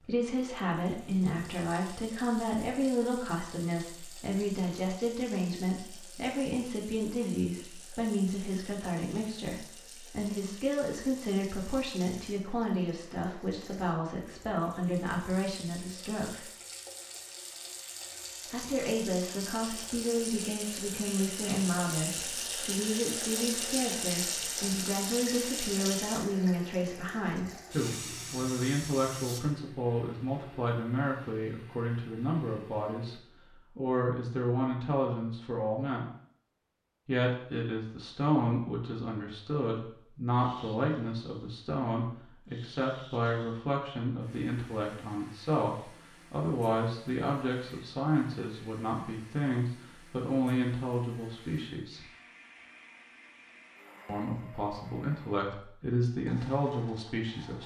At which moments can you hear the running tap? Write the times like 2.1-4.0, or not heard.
0.0-29.6.